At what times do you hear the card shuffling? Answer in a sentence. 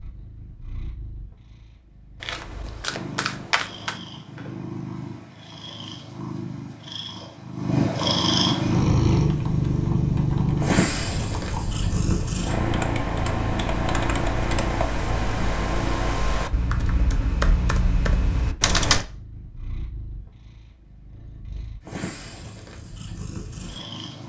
The card shuffling can be heard from 2.2 to 4.0 s.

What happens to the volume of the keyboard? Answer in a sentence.
The volume of the keyboard goes up.